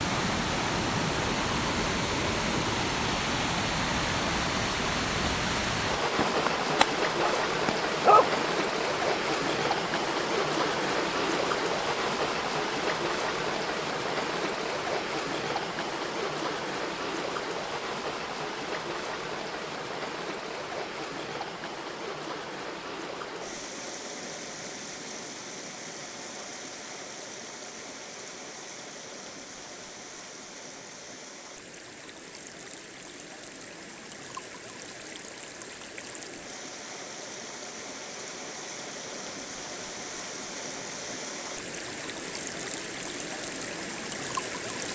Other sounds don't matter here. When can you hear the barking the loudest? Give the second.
8 s.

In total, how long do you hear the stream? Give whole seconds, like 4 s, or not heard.
45 s.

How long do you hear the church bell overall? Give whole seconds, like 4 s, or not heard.
not heard.